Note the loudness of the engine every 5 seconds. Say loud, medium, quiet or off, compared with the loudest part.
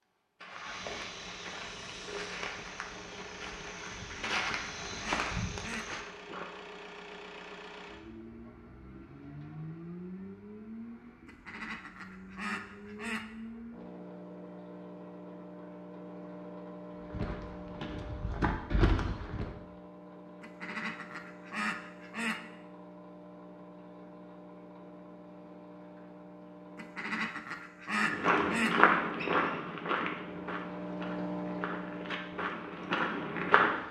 medium, medium, medium, medium, medium, medium, loud.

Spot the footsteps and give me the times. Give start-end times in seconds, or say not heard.
0.5-6.5, 16.9-19.5, 27.9-33.8.